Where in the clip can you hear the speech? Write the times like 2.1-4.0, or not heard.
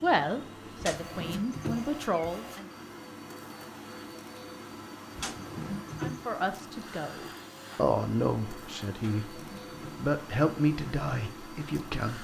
0.0-2.6, 6.0-12.2.